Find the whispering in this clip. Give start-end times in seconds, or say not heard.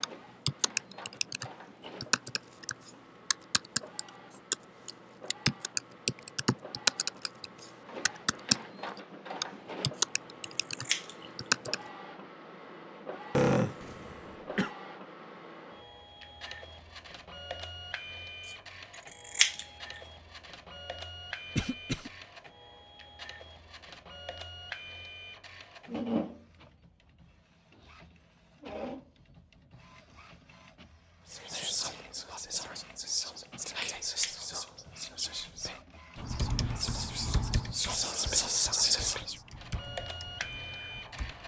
31.3-39.4.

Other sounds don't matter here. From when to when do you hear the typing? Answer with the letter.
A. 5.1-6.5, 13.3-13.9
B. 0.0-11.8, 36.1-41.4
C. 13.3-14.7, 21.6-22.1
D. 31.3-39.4
B.